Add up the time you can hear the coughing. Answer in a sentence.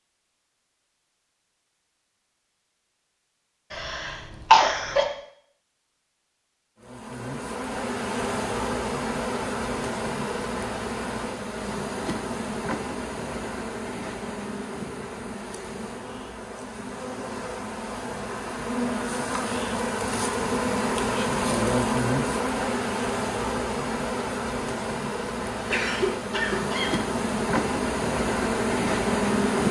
You can hear the coughing for 3 seconds altogether.